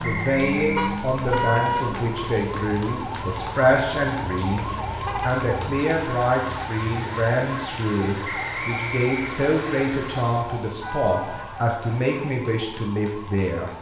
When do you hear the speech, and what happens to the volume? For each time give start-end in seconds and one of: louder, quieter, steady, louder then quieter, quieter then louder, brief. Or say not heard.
0.0-13.7 steady.